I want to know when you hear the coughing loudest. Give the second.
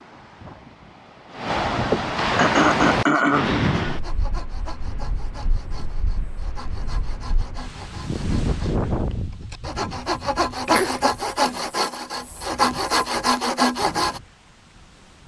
3 s.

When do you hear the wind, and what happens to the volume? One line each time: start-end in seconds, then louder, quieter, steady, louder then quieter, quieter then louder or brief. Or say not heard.
0.0-15.2 quieter.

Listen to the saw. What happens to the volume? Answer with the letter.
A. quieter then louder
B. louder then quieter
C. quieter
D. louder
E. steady
D.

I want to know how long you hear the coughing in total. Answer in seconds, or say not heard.
3 s.